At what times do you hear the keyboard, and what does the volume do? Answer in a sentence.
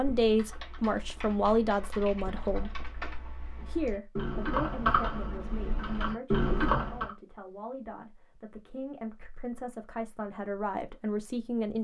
You can hear the keyboard from 0.0 to 7.1 s, getting louder.